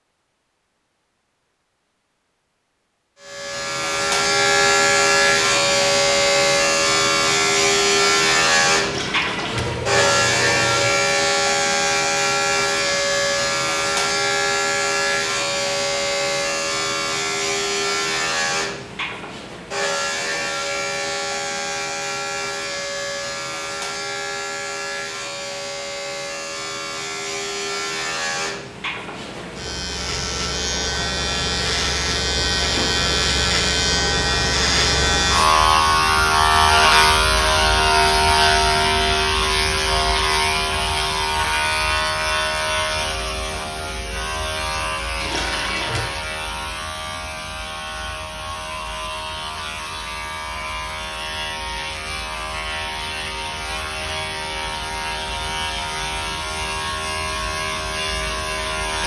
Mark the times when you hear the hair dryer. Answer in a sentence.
The hair dryer can't be heard in this clip.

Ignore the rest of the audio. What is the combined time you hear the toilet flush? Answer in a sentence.
You can hear the toilet flush for 3 seconds altogether.